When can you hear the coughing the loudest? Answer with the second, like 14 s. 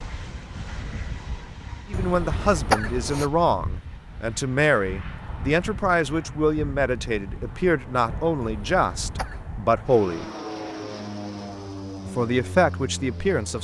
3 s.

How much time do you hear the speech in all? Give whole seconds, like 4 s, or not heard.
10 s.